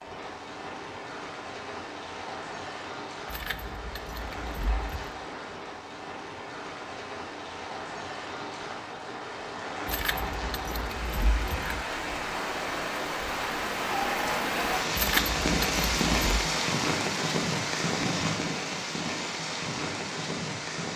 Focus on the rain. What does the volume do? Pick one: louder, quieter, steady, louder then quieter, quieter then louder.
louder.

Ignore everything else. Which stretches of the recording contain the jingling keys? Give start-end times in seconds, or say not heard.
3.2-5.2, 9.8-11.8, 14.9-16.4.